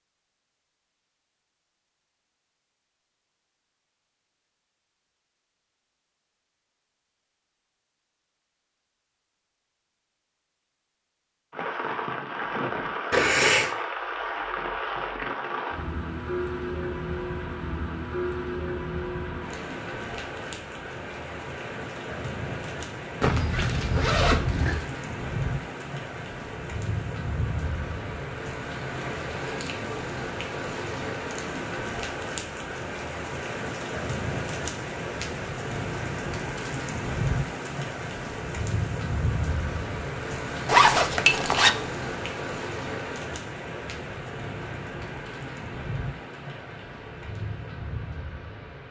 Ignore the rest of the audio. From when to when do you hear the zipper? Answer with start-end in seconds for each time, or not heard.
13.1-13.8, 23.2-24.8, 40.6-41.8.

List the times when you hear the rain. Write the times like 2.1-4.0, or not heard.
11.5-48.8.